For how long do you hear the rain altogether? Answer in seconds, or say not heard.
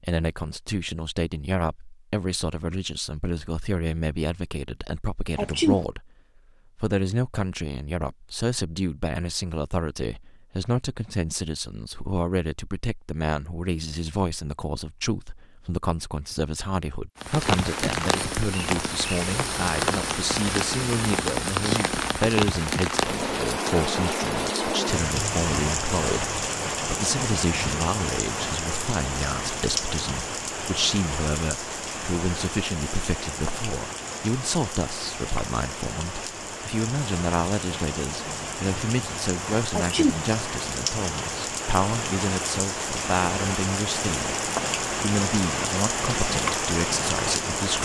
31 s.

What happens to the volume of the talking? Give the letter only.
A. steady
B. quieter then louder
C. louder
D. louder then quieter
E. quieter
A.